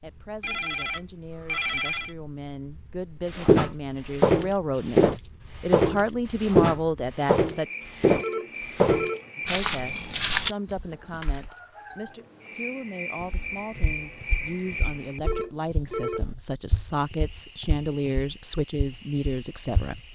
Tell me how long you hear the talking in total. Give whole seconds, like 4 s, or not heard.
18 s.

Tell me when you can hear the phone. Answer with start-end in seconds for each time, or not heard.
0.4-2.1, 8.2-9.3, 15.2-16.3.